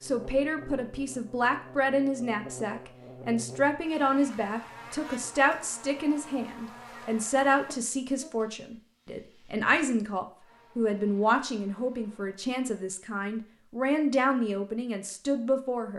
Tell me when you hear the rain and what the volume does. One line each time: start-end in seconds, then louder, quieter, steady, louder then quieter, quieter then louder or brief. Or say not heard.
not heard.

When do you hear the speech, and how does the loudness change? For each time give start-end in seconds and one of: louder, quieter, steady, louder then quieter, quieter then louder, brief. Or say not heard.
0.0-15.9 steady.